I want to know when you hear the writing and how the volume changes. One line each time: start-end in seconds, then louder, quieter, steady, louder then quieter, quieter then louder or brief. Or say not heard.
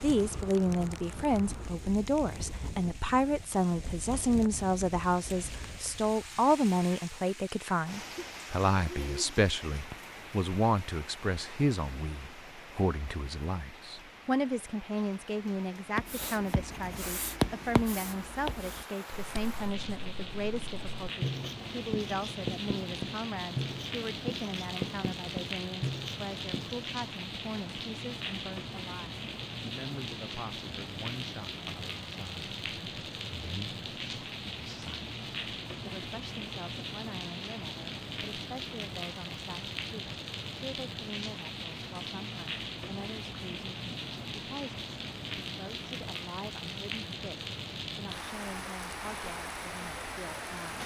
15.9-26.8 quieter then louder.